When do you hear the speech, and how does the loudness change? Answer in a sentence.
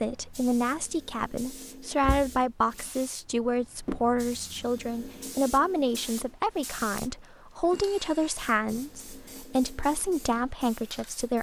You can hear the speech from 0.0 to 11.3 s, at a steady volume.